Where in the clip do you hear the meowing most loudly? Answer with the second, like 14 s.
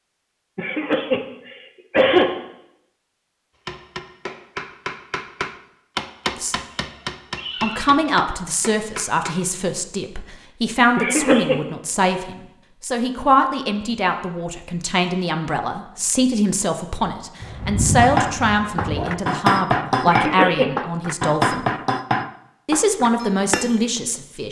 18 s.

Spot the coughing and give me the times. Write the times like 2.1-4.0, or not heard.
0.6-2.3, 10.9-11.6, 20.1-20.7.